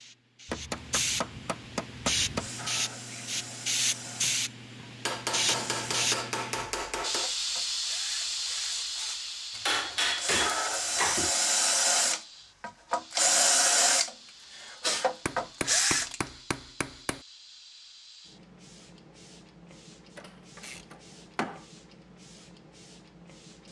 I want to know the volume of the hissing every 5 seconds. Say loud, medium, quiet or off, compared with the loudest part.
loud, loud, quiet, quiet, quiet.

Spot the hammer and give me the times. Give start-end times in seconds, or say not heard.
0.5-2.5, 5.0-7.3, 9.6-11.3, 15.2-17.2, 20.1-21.6.